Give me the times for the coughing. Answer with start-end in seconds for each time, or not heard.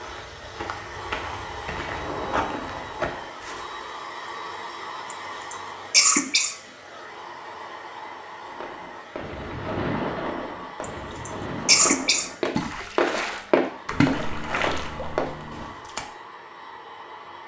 5.1-6.5, 10.8-12.3.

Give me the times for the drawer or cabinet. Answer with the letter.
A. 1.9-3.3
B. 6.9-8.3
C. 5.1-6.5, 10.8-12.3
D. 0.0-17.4
A.